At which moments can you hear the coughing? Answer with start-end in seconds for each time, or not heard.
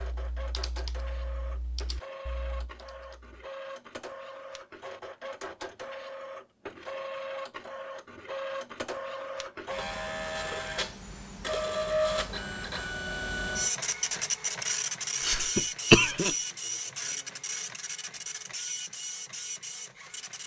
15.2-16.4.